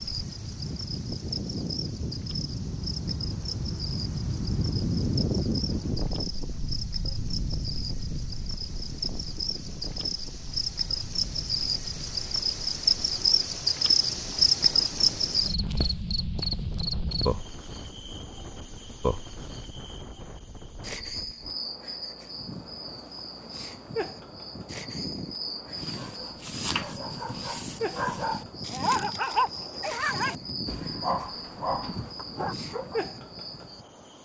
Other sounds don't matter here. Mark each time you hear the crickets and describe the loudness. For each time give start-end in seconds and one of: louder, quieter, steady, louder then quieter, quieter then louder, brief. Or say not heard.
0.0-34.1 louder then quieter.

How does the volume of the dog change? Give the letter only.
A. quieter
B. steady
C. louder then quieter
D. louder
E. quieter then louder
C.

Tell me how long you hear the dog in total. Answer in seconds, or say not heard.
7 s.